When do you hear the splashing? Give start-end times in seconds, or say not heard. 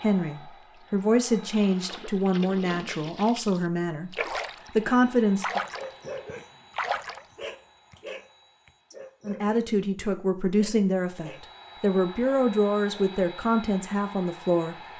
0.8-4.7, 5.4-7.2.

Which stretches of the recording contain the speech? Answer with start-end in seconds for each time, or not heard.
0.0-5.6, 9.2-14.8.